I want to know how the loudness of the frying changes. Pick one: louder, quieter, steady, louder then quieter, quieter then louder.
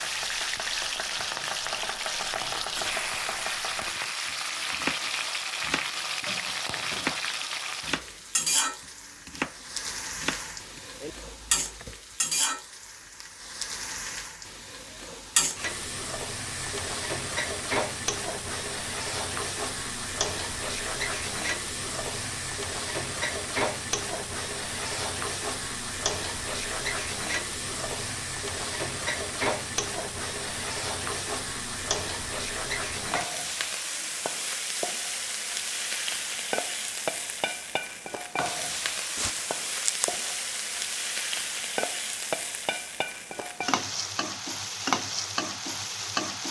steady.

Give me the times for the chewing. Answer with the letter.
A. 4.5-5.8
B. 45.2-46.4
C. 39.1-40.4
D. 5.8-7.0
C.